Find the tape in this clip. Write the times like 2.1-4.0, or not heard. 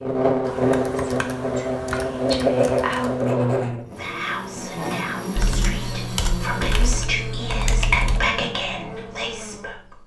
not heard.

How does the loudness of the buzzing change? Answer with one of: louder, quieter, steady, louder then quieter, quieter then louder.
quieter.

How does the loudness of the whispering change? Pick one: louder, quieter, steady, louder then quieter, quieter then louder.
louder.